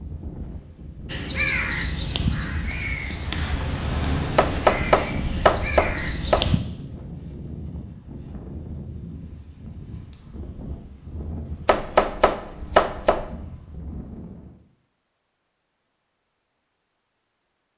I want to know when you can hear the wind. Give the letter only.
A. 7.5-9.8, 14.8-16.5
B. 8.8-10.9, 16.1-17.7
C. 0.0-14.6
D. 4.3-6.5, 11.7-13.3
C.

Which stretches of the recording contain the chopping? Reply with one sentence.
The chopping can be heard from 4.3 to 6.5 s and from 11.7 to 13.3 s.